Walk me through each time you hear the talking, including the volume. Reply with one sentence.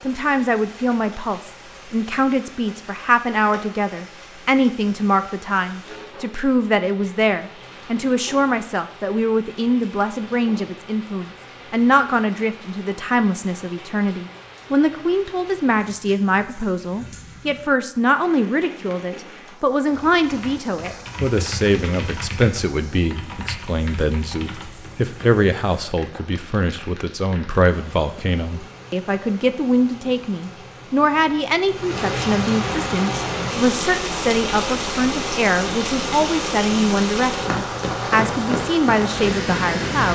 The talking can be heard from 0.0 to 40.1 s, at a steady volume.